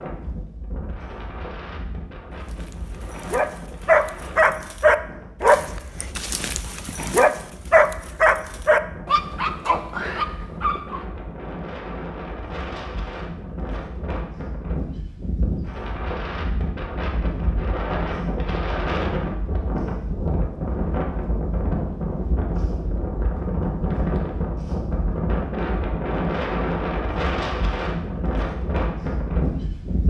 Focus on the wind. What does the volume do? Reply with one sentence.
The volume of the wind goes up.